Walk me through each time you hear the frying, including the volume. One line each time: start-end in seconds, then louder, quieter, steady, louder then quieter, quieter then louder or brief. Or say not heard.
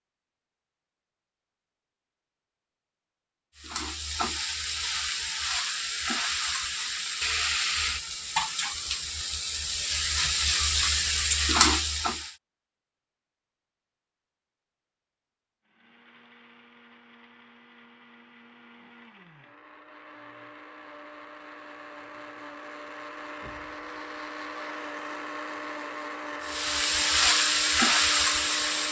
3.5-12.3 louder
26.4-28.8 brief.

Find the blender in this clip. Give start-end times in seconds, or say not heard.
15.7-28.8.